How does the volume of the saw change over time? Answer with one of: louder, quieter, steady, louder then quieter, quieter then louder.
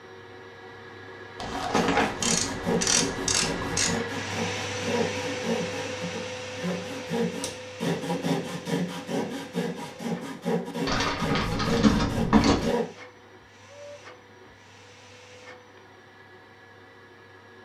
steady.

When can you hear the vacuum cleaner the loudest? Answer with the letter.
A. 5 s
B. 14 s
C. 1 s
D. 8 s
A.